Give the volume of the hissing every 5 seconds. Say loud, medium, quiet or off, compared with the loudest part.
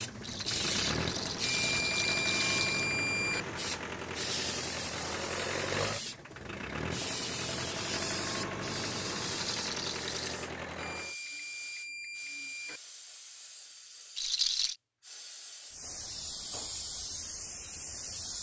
loud, loud, medium, loud.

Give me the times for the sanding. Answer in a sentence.
The sanding can't be heard in this clip.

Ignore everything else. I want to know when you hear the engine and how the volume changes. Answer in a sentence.
The engine can be heard from 0.0 to 11.2 s, at a steady volume.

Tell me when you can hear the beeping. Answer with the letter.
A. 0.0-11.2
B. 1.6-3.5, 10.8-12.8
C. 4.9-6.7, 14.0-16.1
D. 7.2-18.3
B.